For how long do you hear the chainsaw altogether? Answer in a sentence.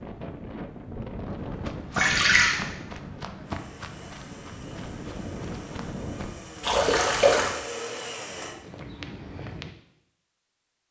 You can hear the chainsaw for 5 seconds altogether.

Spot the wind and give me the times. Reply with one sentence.
The wind can be heard from 0.0 to 6.5 s.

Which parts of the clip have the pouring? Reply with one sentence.
You can hear the pouring from 1.9 to 2.6 s and from 6.6 to 7.5 s.